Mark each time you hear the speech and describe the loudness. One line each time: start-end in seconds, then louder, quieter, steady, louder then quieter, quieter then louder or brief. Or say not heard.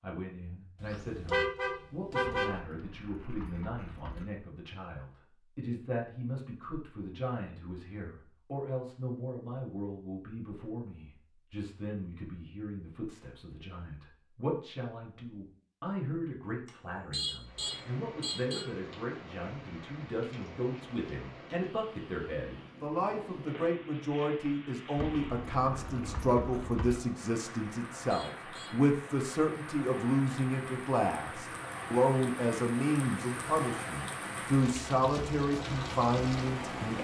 0.0-37.0 louder.